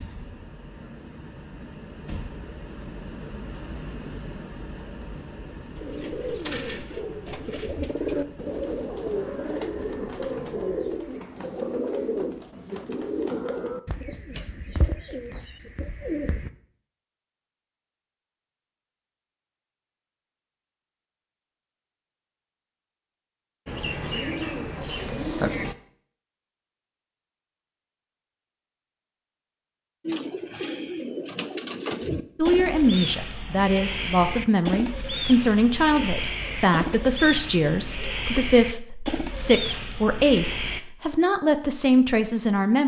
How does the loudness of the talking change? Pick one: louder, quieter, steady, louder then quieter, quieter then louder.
steady.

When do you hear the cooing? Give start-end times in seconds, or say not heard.
5.8-16.5, 23.6-25.8, 30.1-40.8.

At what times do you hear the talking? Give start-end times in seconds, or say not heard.
32.4-42.8.